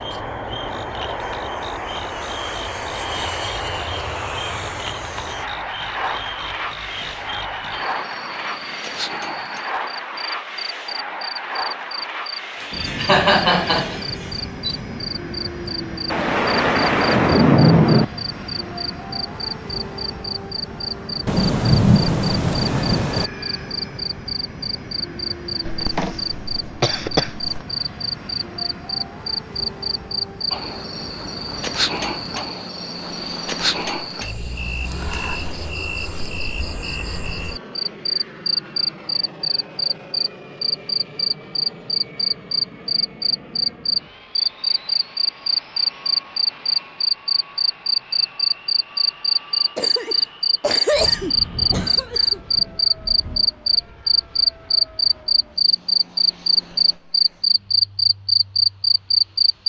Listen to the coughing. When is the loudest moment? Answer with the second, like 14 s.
13 s.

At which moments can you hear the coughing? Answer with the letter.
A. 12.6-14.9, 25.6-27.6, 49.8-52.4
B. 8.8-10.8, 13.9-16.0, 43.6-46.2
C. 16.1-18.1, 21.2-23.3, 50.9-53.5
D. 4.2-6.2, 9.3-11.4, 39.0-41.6
A.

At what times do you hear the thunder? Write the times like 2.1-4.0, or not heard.
16.1-18.1, 21.2-23.3, 50.9-53.5.